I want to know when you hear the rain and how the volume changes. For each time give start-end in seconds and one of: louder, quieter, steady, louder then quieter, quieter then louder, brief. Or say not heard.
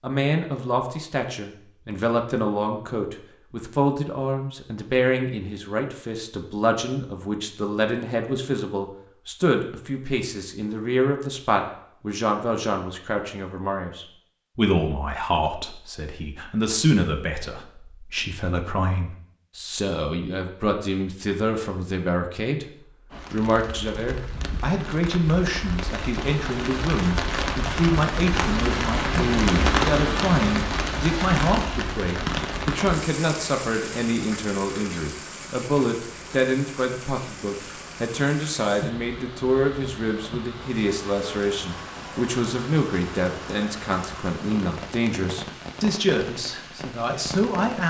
23.1-47.8 louder then quieter.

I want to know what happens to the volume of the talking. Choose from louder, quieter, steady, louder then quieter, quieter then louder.
steady.